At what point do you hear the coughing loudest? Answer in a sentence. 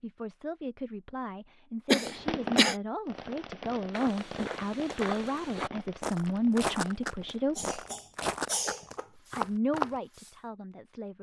The volume of the coughing peaks at 2 seconds.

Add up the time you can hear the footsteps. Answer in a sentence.
You can hear the footsteps for 6 seconds altogether.